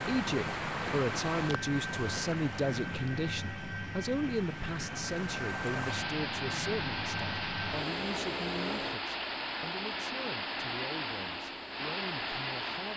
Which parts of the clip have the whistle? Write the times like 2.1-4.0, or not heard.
not heard.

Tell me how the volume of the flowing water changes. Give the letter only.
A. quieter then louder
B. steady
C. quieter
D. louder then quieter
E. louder
A.